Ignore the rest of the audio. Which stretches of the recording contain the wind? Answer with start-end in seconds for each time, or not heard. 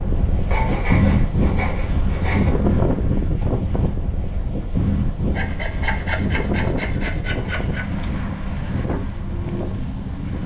0.0-10.4.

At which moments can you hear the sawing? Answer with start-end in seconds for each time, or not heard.
0.5-2.5, 5.3-7.8.